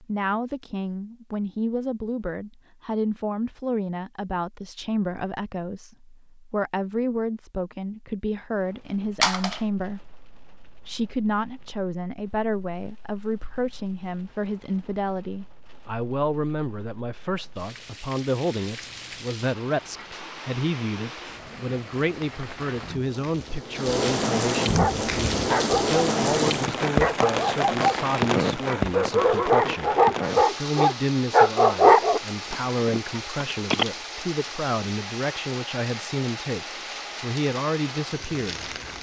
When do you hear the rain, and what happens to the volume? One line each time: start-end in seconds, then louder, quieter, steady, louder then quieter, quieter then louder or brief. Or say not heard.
8.6-38.9 louder then quieter.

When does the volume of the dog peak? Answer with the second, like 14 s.
32 s.